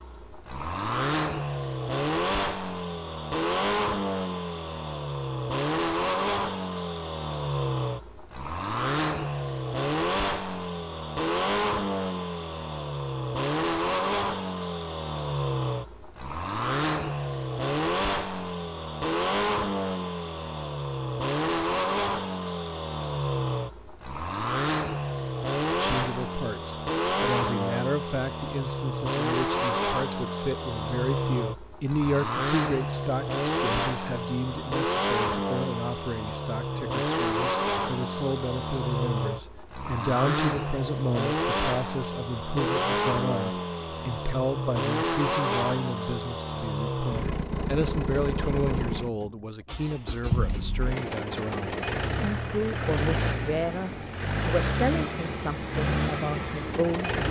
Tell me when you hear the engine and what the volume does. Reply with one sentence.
The engine can be heard from 0.0 to 57.2 s, at a steady volume.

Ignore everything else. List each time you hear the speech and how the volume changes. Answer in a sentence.
The speech can be heard from 25.8 to 57.2 s, at a steady volume.